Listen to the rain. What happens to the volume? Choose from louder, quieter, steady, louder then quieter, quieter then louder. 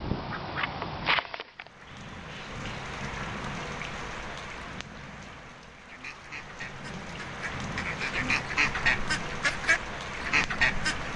quieter then louder.